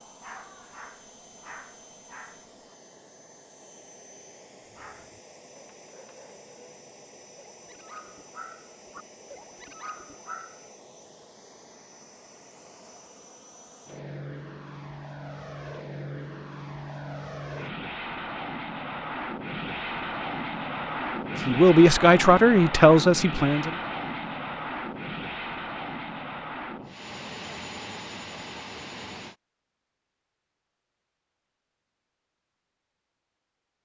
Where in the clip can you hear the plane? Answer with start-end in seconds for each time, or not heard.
0.0-29.4.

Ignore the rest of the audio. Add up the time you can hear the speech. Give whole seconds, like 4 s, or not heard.
2 s.